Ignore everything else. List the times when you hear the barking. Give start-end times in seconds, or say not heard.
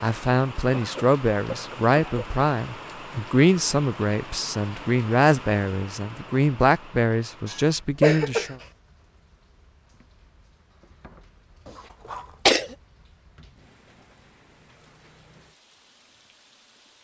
not heard.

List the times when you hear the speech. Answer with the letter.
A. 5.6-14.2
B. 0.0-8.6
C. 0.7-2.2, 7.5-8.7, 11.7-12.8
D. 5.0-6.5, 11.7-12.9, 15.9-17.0
B.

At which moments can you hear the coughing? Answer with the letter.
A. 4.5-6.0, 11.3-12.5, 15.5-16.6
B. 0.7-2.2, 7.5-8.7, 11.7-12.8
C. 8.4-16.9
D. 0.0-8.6
B.